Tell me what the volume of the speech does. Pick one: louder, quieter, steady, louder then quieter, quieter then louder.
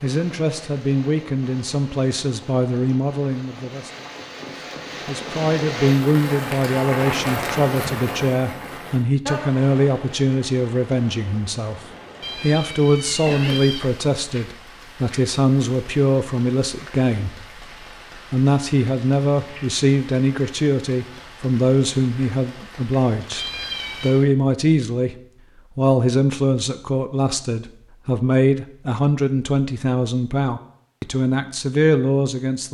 steady.